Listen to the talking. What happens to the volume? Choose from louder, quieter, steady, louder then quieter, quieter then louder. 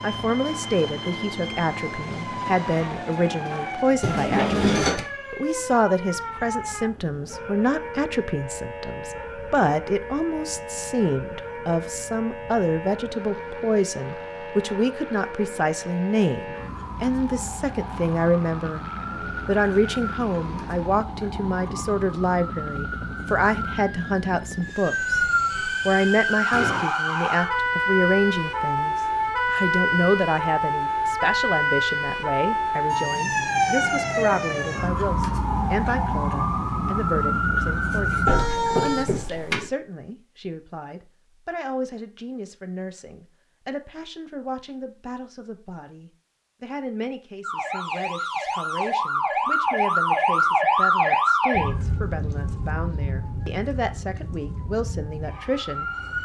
quieter.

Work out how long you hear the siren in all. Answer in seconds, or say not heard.
48 s.